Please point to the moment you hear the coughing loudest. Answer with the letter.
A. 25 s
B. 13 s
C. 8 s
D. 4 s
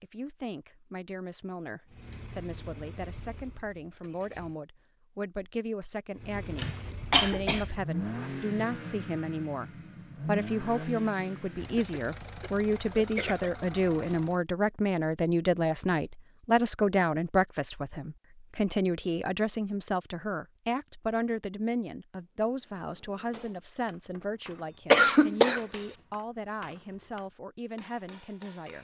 A.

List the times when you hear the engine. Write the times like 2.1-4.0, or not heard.
1.9-4.5, 6.2-14.4.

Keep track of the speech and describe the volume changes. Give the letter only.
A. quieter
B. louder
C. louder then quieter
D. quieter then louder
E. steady
C.